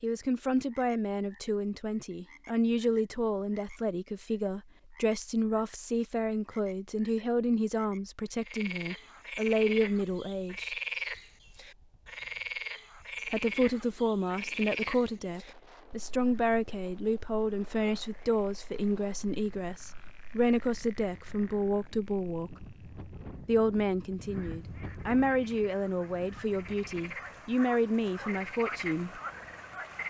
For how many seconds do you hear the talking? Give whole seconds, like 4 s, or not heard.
26 s.